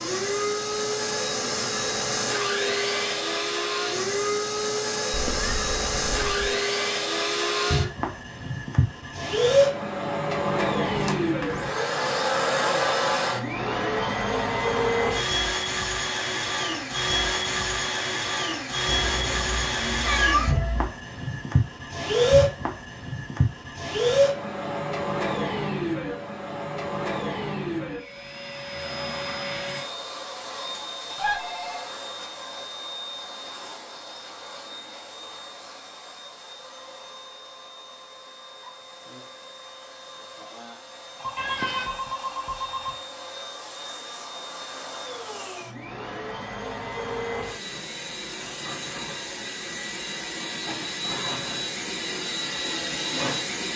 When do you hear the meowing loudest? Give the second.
20 s.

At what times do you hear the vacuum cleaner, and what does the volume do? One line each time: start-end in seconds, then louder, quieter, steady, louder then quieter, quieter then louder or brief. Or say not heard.
0.0-53.7 quieter then louder.